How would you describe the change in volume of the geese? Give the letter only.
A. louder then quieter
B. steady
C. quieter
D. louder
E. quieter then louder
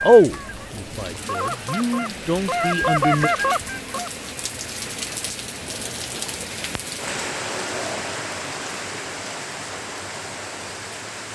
D.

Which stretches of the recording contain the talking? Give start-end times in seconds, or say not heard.
0.0-3.3.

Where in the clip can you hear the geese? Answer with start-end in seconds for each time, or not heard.
0.0-4.1.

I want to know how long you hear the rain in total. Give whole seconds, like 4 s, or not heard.
11 s.